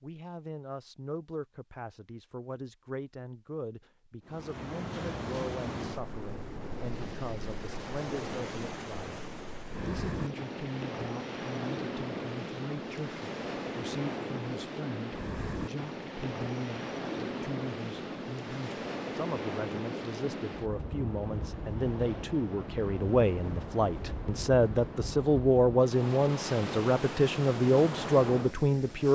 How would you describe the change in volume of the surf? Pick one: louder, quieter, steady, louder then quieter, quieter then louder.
steady.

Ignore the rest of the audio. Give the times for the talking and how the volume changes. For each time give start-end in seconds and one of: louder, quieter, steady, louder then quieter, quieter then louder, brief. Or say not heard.
0.0-29.1 louder.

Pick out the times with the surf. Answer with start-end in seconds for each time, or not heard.
4.2-29.1.